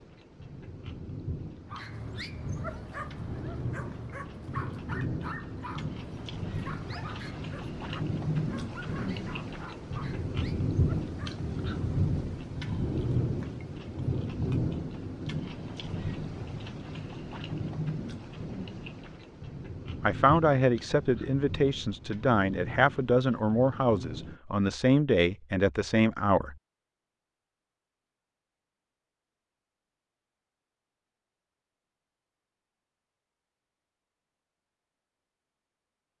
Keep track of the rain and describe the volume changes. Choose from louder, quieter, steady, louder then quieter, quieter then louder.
louder then quieter.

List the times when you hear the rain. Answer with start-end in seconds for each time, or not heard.
0.0-24.4.